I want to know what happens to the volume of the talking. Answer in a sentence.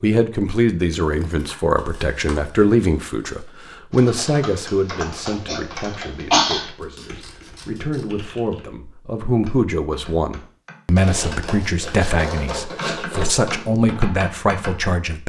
The loudness of the talking goes down, then up.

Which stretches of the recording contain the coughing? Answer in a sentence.
The coughing can be heard from 5.5 to 6.7 s.